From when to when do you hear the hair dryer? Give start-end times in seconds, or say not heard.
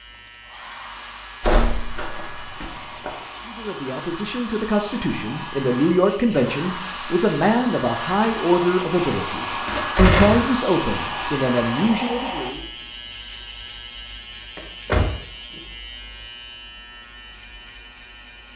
0.0-12.5.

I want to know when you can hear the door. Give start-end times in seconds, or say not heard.
1.4-3.1, 9.7-10.6, 14.6-15.6.